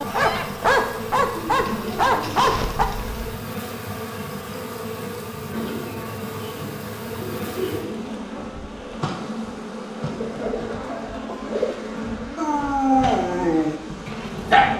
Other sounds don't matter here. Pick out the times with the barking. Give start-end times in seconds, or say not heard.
0.0-2.9, 12.3-14.7.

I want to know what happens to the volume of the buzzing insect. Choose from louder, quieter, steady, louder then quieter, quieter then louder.
steady.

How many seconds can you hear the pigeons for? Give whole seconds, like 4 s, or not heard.
7 s.